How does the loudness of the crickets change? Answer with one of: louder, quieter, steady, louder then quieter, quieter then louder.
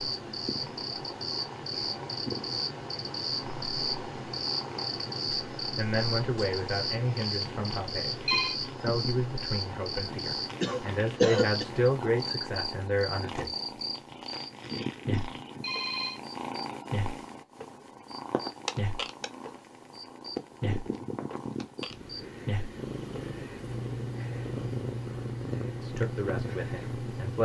steady.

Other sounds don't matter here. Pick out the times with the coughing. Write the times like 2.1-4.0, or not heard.
10.6-11.7.